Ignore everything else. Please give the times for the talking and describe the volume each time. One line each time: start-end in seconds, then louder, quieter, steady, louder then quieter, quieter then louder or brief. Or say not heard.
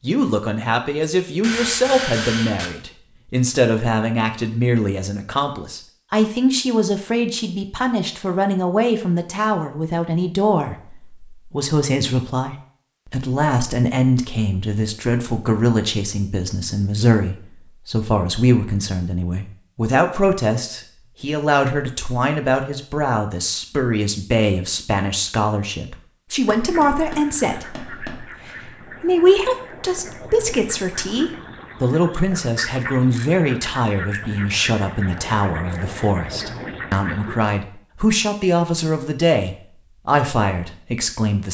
0.0-41.4 steady.